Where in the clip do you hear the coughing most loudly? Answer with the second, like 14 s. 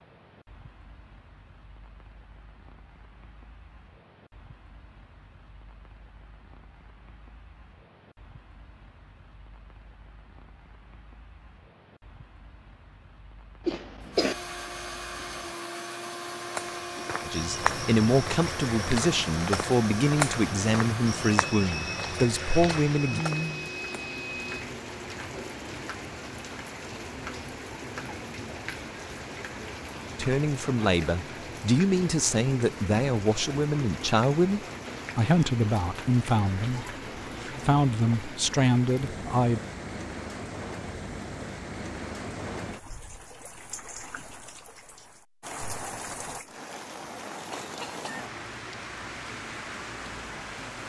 14 s.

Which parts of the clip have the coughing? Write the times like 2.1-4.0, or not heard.
13.7-14.3, 47.5-48.2.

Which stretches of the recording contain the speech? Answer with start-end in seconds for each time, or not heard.
17.2-23.2, 30.1-39.6.